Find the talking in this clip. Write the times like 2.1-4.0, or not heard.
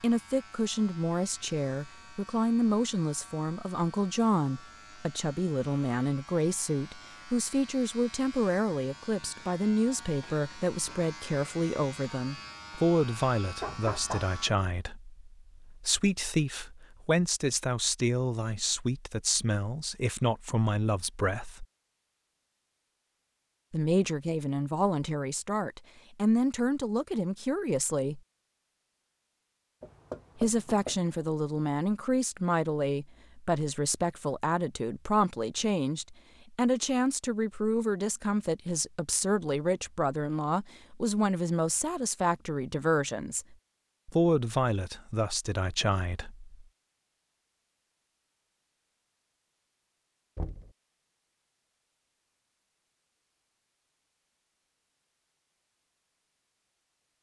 0.0-21.6, 23.7-28.2, 30.4-46.5.